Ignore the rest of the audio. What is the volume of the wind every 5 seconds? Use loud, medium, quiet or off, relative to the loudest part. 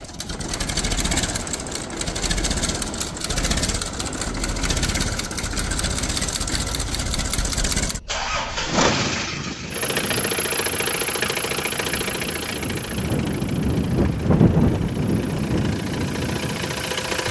medium, quiet, loud, loud.